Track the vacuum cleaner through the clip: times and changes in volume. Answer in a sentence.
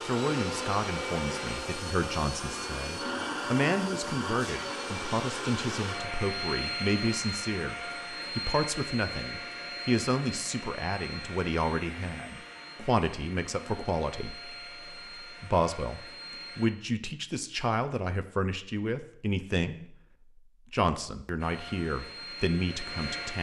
The vacuum cleaner can be heard from 0.0 to 16.7 s, getting quieter; and briefly from 21.4 to 23.3 s.